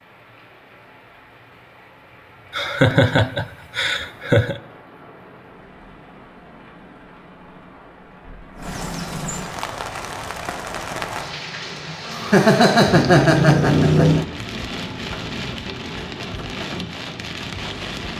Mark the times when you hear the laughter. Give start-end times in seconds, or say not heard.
2.5-4.6, 11.8-14.2.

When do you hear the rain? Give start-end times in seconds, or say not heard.
0.0-18.1.